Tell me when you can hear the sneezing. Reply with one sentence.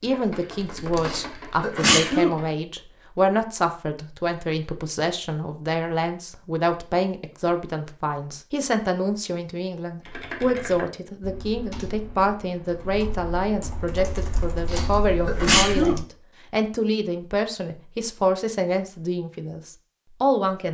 You can hear the sneezing from 1.1 to 2.3 s and from 14.7 to 15.9 s.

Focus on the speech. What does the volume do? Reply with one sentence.
The loudness of the speech stays about the same.